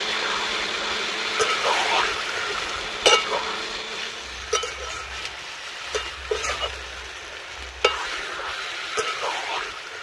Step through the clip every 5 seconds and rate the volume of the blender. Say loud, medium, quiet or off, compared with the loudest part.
loud, off.